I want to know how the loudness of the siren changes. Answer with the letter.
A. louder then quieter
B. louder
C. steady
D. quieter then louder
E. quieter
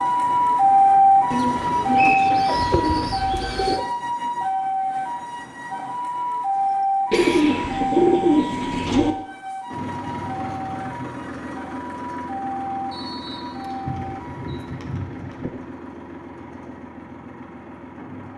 E.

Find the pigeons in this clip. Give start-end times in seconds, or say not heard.
1.3-3.9, 7.1-9.2, 13.8-15.5.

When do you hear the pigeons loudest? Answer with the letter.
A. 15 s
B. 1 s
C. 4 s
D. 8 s
D.